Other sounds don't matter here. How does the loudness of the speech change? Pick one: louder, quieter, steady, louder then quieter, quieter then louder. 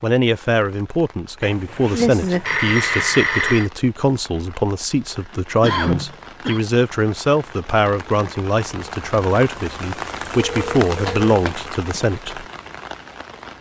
steady.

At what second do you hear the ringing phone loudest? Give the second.
3 s.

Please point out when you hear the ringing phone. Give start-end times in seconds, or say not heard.
1.4-3.7, 10.3-11.2.